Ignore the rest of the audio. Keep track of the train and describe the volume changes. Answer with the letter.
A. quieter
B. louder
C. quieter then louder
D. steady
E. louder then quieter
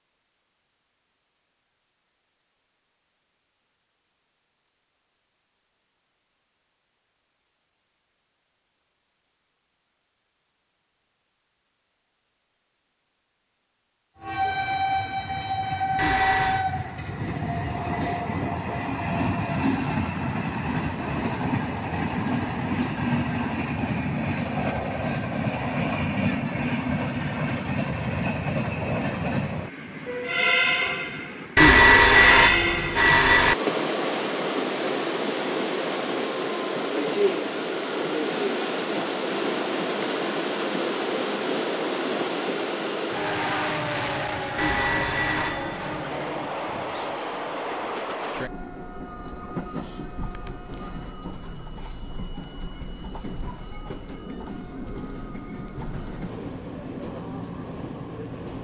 A.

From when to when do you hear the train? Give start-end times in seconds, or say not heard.
14.2-58.5.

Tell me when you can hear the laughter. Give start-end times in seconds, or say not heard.
not heard.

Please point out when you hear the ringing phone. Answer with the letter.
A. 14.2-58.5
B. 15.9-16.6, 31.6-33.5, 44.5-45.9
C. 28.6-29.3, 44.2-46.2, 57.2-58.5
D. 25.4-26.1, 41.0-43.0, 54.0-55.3
B.